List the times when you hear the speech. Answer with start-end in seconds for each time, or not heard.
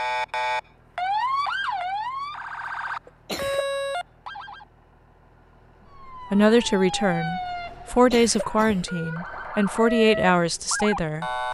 6.3-11.4.